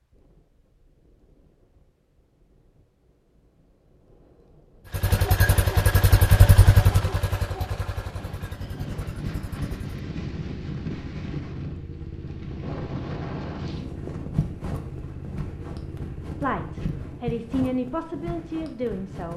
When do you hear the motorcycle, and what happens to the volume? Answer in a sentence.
The motorcycle can be heard from 4.9 to 17.3 s, getting quieter.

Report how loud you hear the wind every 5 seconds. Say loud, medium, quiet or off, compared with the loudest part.
quiet, loud, loud, loud.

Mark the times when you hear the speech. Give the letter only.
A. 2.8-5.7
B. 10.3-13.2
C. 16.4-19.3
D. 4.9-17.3
C.